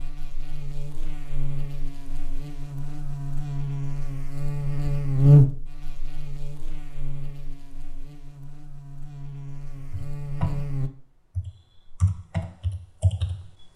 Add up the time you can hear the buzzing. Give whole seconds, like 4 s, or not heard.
11 s.